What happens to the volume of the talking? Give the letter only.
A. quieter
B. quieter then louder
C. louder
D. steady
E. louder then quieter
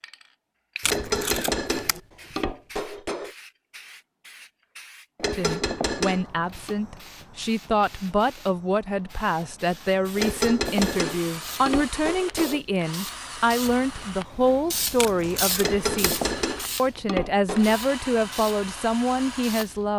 D.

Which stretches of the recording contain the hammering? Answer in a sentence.
You can hear the hammering from 0.8 to 3.3 s, from 5.2 to 6.8 s, from 10.2 to 12.6 s and from 15.6 to 17.8 s.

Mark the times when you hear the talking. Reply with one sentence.
The talking can be heard from 5.3 to 19.9 s.